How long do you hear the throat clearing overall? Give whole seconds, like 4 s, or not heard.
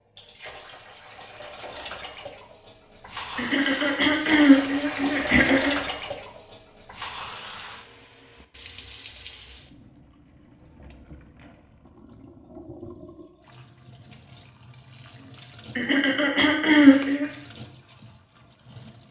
4 s.